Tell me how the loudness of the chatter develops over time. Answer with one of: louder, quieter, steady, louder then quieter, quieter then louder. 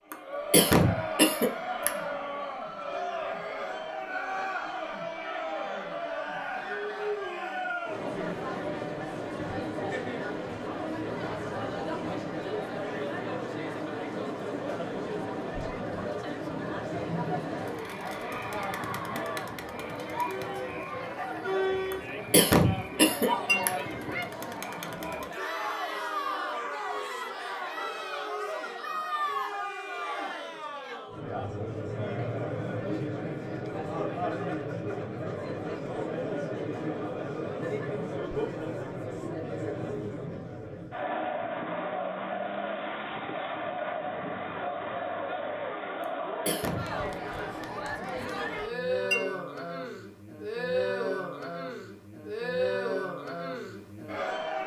steady.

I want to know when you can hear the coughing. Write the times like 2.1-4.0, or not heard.
0.1-1.9, 21.9-23.7, 46.0-47.0.